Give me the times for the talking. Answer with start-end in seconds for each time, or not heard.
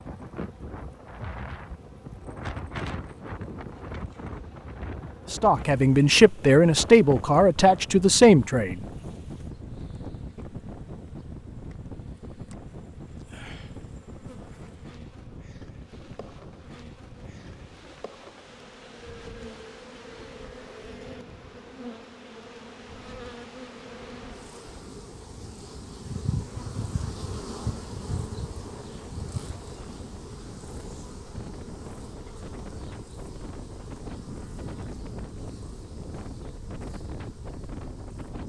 5.3-8.8.